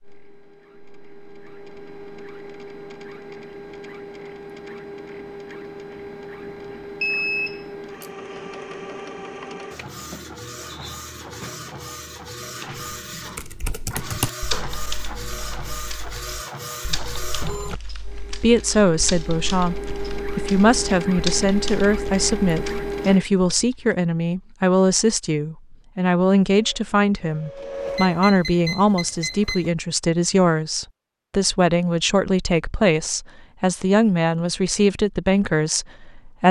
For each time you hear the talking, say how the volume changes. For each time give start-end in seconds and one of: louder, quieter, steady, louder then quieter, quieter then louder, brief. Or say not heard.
18.4-36.4 steady.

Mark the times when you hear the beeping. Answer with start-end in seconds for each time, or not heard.
7.0-8.1, 27.9-29.7.